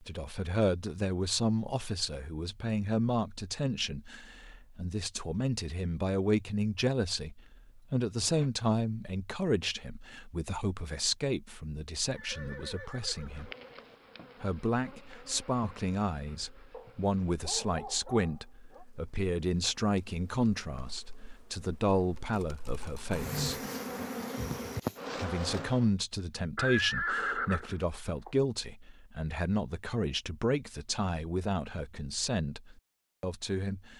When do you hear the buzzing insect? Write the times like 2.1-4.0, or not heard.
13.2-25.9.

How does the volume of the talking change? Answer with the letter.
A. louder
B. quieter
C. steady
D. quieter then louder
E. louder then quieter
C.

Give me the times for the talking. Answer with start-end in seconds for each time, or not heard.
0.0-13.5, 14.4-23.6, 25.1-33.9.